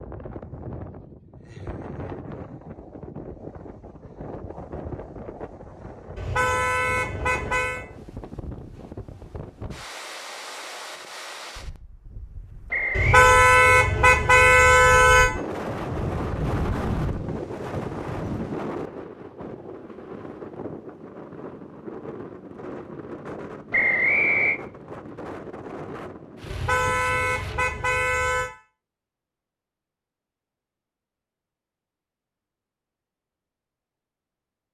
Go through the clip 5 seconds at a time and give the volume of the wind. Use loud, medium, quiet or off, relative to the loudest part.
medium, medium, medium, loud, medium, medium, off.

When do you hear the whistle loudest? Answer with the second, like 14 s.
24 s.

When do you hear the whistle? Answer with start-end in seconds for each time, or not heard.
12.7-13.2, 23.7-24.6.